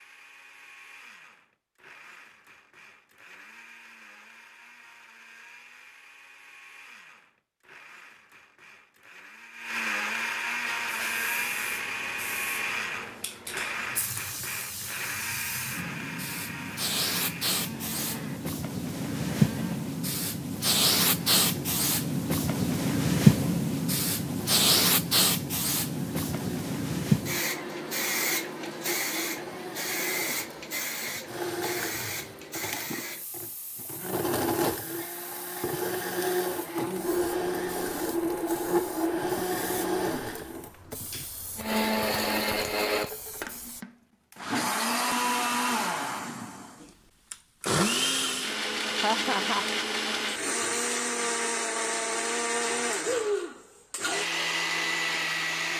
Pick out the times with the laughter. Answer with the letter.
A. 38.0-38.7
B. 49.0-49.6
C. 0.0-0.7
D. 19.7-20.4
B.